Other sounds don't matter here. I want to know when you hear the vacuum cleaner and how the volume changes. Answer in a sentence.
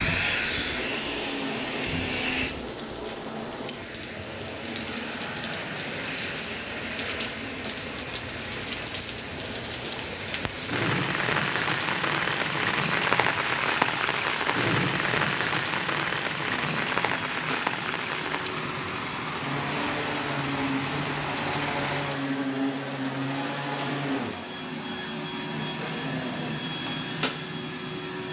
The vacuum cleaner can be heard briefly from 0.0 to 2.5 s; and from 16.6 to 28.2 s, getting louder.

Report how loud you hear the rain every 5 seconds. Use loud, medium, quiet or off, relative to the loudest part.
medium, medium, loud, loud, medium, off.